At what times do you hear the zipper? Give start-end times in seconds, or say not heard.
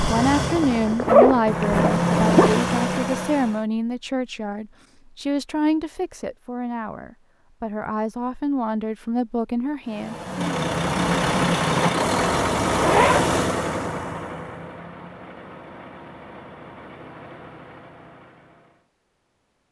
0.6-2.5, 12.7-13.2.